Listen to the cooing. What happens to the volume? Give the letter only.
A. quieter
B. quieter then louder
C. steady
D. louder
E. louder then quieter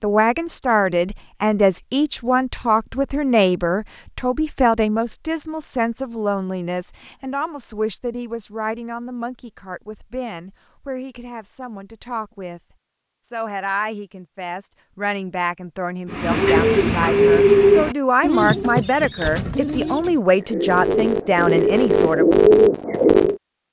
B.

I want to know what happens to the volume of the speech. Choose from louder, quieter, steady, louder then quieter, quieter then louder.
quieter then louder.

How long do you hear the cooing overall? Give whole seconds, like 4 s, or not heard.
7 s.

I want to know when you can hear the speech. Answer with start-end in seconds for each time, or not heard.
0.0-12.6, 13.2-22.4.